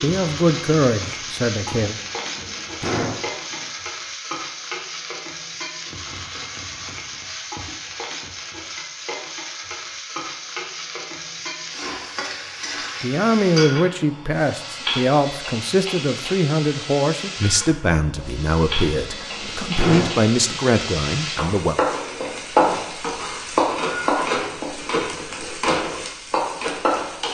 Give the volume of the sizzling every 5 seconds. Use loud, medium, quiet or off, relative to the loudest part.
medium, medium, medium, medium, loud, loud.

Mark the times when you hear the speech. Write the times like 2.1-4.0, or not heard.
0.0-1.9, 13.0-21.8.